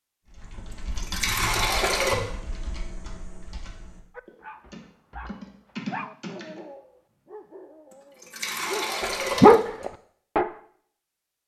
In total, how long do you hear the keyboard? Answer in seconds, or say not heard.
6 s.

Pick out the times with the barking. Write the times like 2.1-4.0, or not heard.
4.2-10.5.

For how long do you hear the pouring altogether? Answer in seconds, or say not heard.
3 s.